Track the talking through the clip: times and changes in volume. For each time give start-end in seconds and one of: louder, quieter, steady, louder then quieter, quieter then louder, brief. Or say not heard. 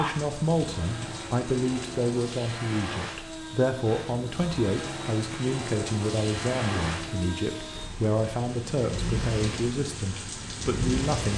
0.0-11.3 steady.